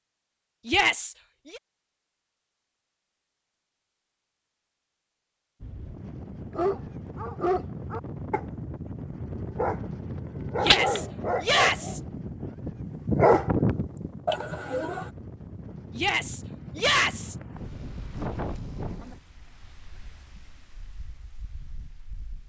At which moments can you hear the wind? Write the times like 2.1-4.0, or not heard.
5.6-22.4.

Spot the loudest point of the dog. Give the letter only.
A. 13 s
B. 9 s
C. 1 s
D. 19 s
A.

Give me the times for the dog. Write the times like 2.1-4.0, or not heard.
6.5-15.1.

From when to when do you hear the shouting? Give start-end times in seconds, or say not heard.
0.7-1.6, 10.6-12.0, 15.9-17.4.